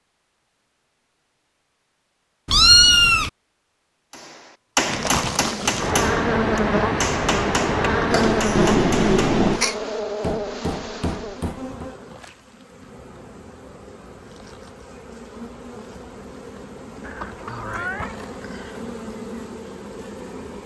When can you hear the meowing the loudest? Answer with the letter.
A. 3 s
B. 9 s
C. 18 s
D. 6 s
A.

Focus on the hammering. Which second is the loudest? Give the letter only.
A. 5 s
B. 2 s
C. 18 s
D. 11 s
A.